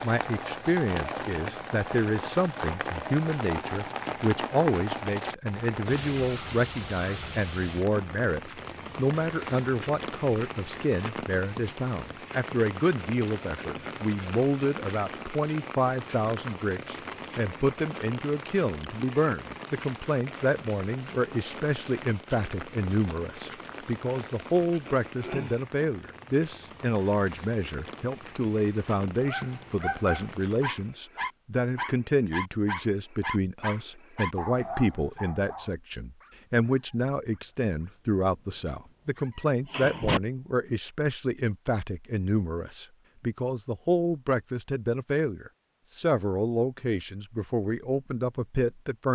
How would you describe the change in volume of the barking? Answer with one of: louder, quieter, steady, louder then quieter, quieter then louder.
quieter then louder.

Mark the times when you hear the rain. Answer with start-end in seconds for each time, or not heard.
0.0-31.0.